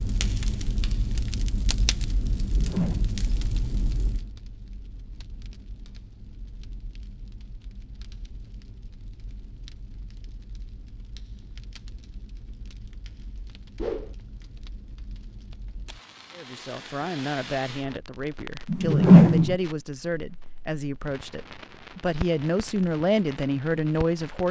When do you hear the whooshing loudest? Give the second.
19 s.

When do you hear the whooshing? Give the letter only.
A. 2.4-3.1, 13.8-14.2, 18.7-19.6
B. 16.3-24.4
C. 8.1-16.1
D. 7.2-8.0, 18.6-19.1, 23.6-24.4
A.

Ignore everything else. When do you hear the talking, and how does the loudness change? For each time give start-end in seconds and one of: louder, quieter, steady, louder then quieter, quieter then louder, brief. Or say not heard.
16.3-24.4 louder.